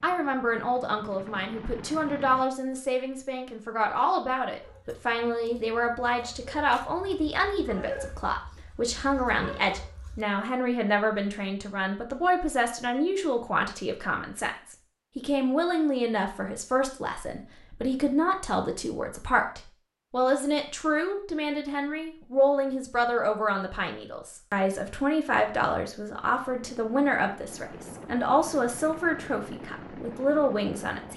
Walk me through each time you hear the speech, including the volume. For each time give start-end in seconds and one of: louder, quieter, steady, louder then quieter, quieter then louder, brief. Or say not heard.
0.0-31.1 steady.